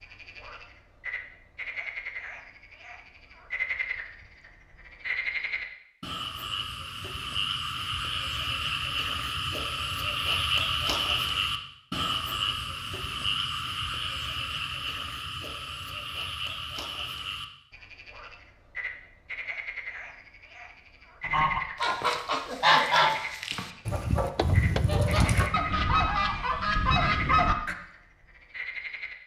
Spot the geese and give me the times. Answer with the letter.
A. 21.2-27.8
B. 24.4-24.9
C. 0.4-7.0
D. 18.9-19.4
A.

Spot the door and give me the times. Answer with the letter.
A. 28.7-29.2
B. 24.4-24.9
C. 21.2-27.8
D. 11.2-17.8
B.